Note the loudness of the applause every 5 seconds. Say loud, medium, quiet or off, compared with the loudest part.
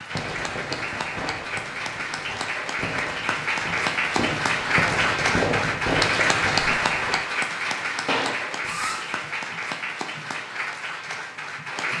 loud, loud, medium.